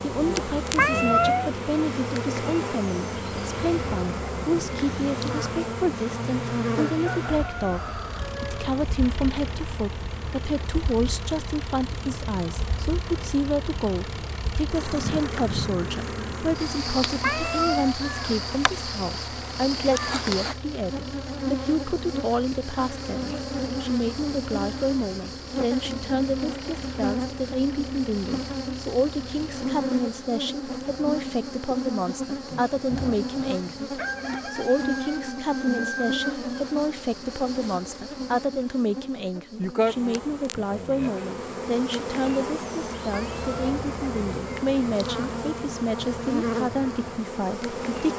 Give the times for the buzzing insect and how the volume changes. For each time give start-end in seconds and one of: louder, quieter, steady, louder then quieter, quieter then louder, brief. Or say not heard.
0.0-48.1 steady.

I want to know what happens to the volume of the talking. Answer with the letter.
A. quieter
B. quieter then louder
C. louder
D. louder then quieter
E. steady
E.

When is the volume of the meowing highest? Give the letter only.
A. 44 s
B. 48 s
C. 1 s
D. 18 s
C.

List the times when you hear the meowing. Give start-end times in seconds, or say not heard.
0.8-1.5, 17.2-17.9, 43.1-43.7.